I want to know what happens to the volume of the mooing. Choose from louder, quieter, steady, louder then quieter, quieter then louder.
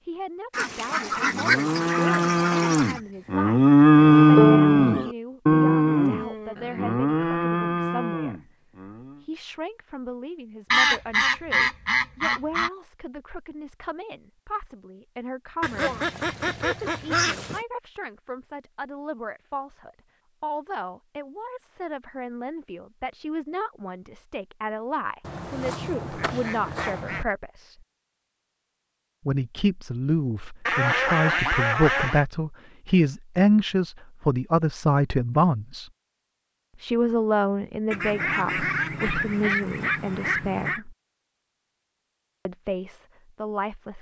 louder then quieter.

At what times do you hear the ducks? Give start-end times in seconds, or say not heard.
0.5-3.0, 10.7-12.7, 15.6-17.6, 25.2-27.2, 30.6-32.2, 37.9-40.8.